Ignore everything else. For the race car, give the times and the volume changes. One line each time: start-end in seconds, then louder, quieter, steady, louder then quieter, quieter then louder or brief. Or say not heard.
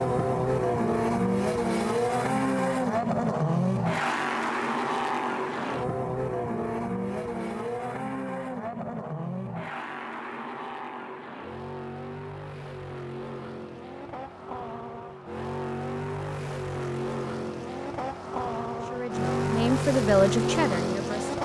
0.0-21.4 quieter then louder.